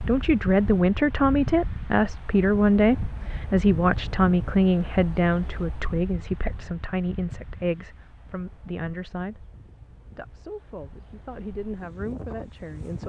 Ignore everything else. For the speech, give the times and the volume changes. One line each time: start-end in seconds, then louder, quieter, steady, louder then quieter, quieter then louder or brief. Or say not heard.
0.1-9.5 quieter
10.2-13.0 brief.